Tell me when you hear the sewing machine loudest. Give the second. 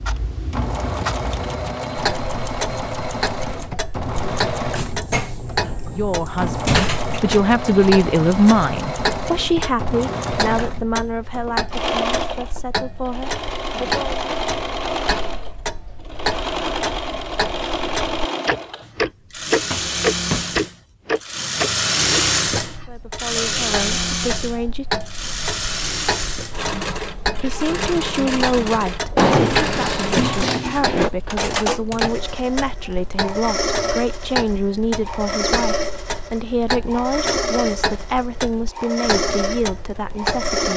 22 s.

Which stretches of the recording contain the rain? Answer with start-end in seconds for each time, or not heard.
not heard.